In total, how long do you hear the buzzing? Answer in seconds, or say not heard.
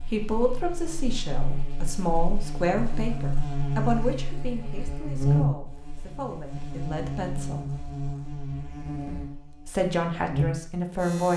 11 s.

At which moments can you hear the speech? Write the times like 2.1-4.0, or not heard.
0.1-7.7, 9.1-11.3.